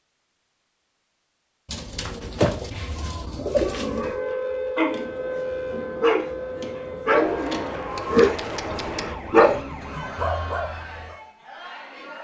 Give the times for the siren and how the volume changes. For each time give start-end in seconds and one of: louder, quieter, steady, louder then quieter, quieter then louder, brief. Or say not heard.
3.7-10.6 quieter.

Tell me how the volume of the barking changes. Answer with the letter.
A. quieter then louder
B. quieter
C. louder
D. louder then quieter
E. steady
D.